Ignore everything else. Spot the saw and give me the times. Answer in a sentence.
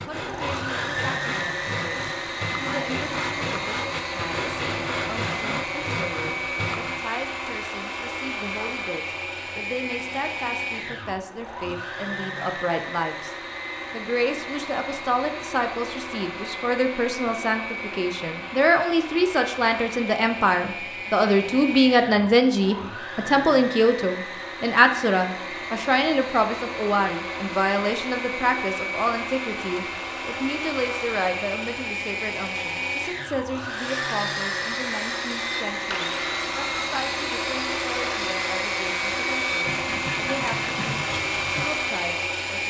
The saw can be heard from 0.0 to 7.0 s and from 33.6 to 41.7 s.